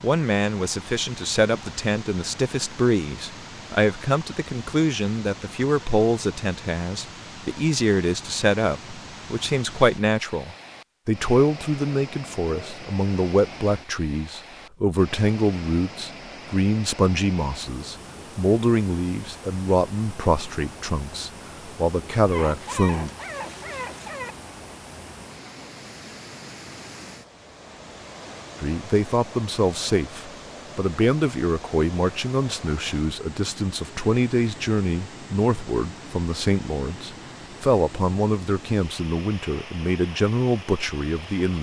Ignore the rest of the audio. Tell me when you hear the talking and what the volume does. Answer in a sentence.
You can hear the talking from 0.0 to 23.1 s, at a steady volume; and from 28.6 to 41.5 s, at a steady volume.